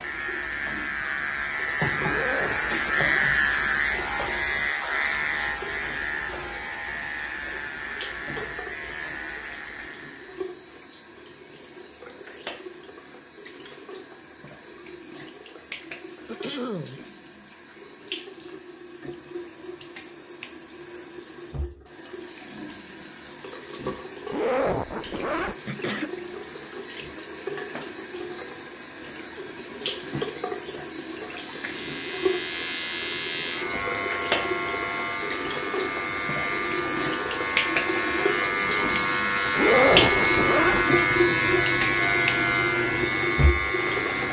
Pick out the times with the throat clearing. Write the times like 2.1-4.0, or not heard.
16.2-17.0, 25.6-26.2.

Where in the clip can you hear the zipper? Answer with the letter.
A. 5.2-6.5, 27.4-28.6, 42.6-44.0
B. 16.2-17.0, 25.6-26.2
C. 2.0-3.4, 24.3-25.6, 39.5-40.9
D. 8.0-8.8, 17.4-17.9
C.